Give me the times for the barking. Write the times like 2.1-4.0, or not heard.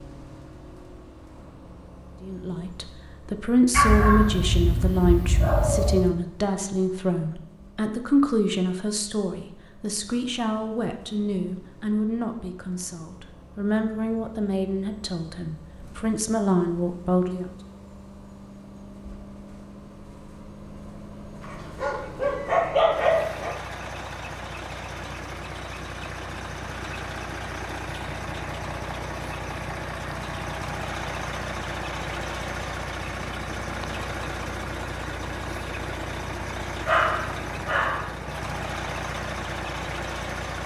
3.7-6.2, 21.4-23.6, 36.9-38.1.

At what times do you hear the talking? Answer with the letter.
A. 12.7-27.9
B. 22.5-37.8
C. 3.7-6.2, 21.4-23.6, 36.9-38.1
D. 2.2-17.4
D.